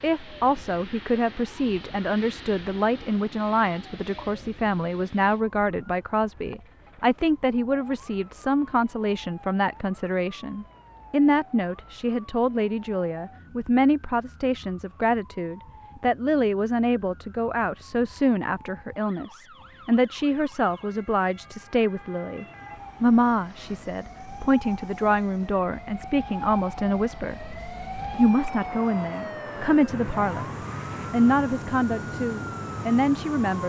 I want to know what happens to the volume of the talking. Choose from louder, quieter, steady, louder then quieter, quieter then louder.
steady.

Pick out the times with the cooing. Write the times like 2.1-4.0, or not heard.
not heard.